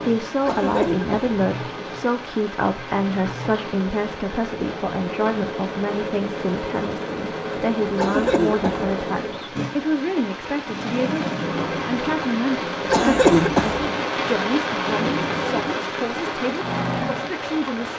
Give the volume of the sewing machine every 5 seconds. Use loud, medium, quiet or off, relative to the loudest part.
medium, loud, loud, loud.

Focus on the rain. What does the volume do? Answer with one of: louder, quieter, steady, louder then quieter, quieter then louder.
louder.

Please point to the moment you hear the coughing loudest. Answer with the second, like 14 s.
13 s.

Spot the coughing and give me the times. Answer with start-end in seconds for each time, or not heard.
0.5-1.4, 8.0-8.9, 12.9-13.8.